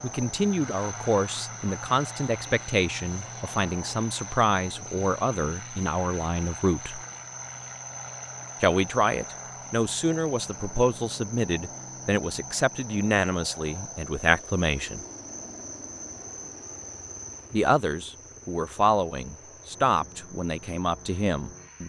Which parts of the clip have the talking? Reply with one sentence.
You can hear the talking from 0.0 to 7.0 s, from 8.6 to 15.0 s and from 17.5 to 21.8 s.